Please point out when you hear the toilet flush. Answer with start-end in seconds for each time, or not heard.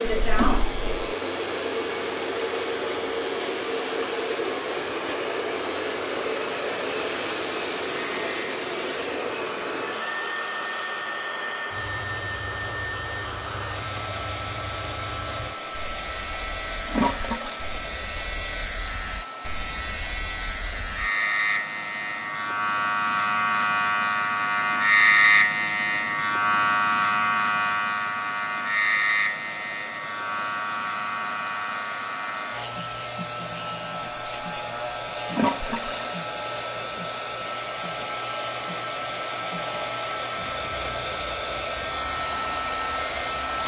0.1-1.1, 16.9-17.6, 35.3-36.1.